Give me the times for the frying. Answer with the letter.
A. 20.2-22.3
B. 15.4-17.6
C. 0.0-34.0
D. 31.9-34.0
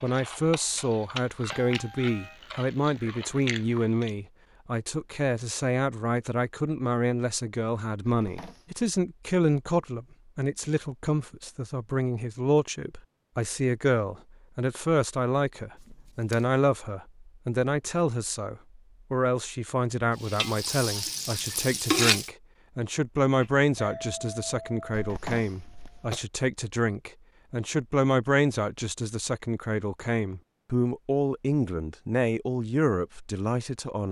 A.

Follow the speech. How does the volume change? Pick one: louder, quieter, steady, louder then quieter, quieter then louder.
steady.